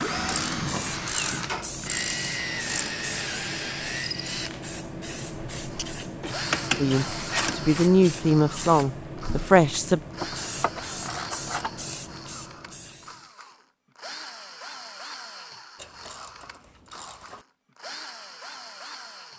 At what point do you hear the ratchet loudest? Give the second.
7 s.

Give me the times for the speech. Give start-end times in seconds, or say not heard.
6.8-10.0.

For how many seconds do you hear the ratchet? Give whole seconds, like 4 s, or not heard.
8 s.